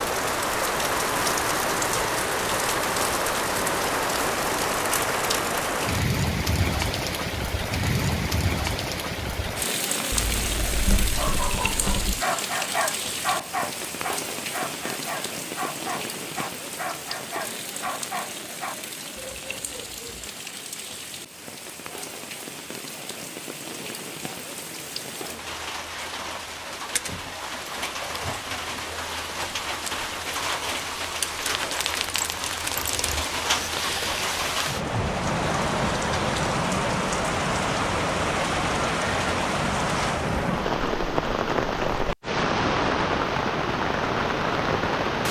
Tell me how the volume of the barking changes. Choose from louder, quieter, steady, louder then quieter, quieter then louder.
quieter.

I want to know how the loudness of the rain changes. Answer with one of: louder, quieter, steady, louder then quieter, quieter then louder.
quieter then louder.